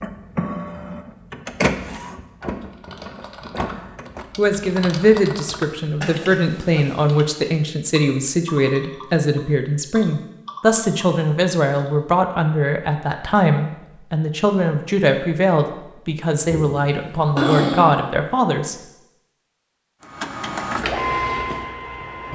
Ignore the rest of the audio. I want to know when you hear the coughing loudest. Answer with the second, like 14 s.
18 s.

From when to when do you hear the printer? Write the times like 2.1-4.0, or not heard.
0.0-4.2, 20.1-22.3.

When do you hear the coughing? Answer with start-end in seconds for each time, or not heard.
6.0-6.4, 16.5-18.0.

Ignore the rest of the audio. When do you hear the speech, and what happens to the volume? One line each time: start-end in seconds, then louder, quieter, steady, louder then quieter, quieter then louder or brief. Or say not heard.
4.3-18.8 steady.